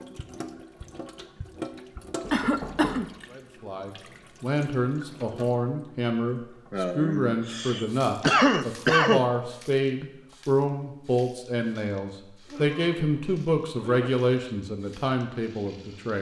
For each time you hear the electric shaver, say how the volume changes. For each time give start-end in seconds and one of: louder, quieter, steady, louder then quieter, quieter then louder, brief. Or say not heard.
not heard.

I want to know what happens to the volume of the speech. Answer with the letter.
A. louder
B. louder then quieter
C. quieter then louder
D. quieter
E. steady
E.